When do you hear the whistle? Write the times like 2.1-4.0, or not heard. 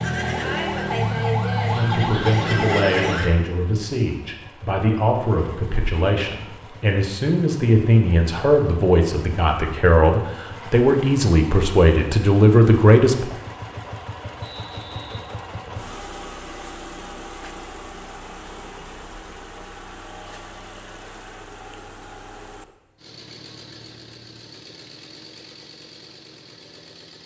14.4-15.8.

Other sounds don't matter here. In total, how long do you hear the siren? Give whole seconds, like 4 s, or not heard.
3 s.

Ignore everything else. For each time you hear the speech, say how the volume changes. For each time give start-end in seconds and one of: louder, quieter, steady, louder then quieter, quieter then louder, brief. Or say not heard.
1.7-13.3 louder.